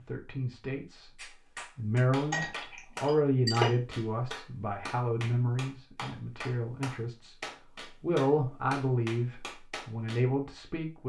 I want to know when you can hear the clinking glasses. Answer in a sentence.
You can hear the clinking glasses from 2.3 to 3.8 s.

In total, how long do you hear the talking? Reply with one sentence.
You can hear the talking for 10 seconds altogether.